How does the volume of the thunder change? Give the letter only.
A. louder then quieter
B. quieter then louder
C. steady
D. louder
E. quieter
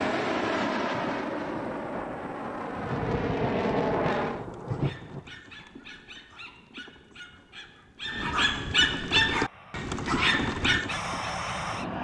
D.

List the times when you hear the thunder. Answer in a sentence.
You can hear the thunder from 0.9 to 5.3 s.